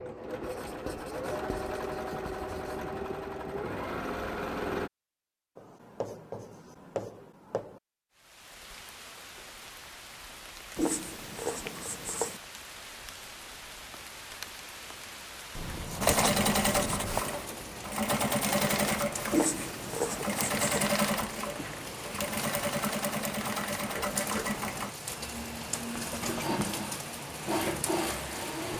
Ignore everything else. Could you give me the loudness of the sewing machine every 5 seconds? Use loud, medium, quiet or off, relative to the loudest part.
medium, off, off, loud, loud, medium.